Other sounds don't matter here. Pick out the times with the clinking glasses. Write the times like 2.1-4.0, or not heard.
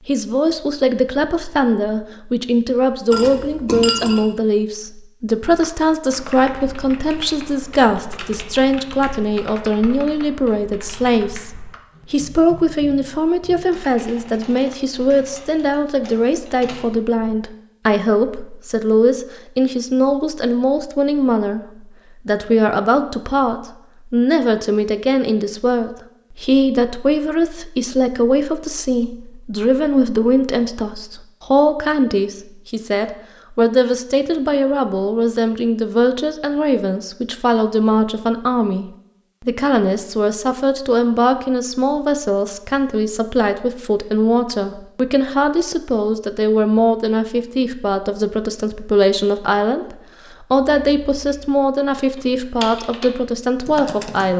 3.1-4.2.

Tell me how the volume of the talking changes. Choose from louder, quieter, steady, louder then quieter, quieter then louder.
steady.